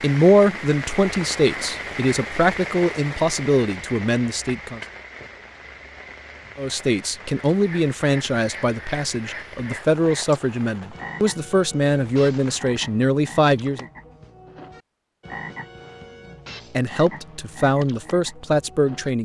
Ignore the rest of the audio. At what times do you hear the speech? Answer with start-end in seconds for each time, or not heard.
0.0-4.8, 6.5-13.8, 16.7-19.2.